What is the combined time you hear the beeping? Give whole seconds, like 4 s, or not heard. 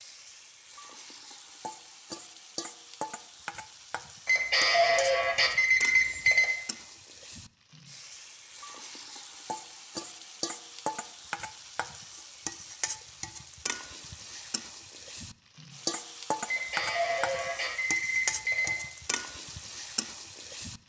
5 s.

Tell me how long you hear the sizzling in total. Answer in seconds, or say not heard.
21 s.